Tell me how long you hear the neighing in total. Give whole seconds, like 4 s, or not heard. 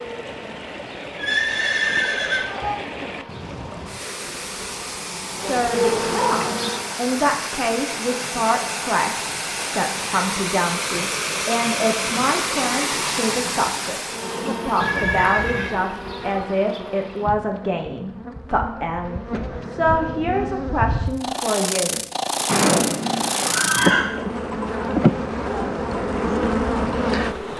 4 s.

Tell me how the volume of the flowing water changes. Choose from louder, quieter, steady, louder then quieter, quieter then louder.
louder.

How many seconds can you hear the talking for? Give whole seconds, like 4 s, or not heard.
17 s.